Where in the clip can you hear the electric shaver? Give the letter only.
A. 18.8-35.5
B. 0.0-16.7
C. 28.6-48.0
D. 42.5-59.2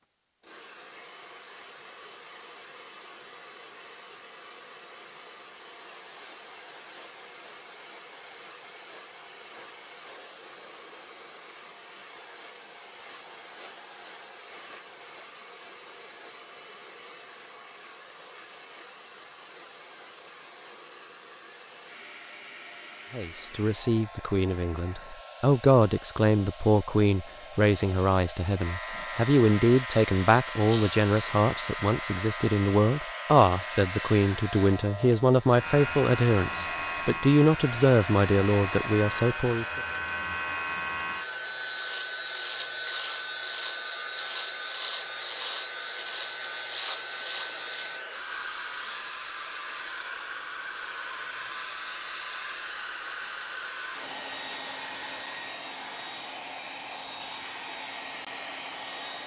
C.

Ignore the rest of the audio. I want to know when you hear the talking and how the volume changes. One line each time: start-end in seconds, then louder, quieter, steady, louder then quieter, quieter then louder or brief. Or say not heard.
23.1-39.8 steady.